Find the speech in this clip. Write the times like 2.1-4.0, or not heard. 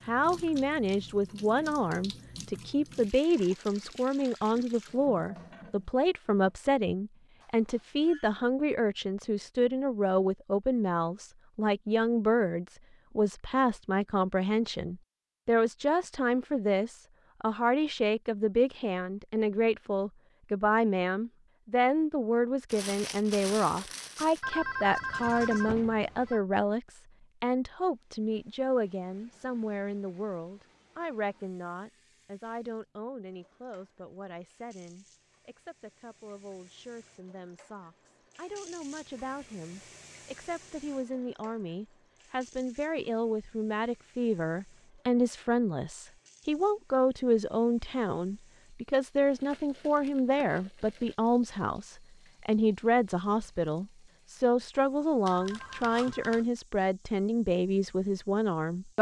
0.1-58.9.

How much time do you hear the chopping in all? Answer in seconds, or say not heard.
not heard.